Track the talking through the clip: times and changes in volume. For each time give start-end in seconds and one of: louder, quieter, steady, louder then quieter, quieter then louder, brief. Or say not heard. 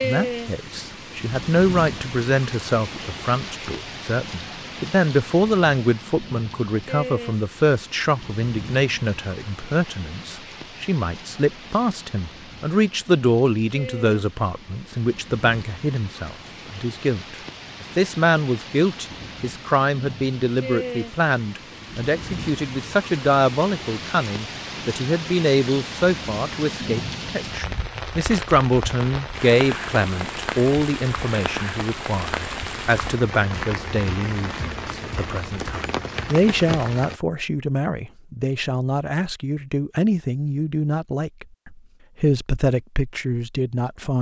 0.0-44.1 steady.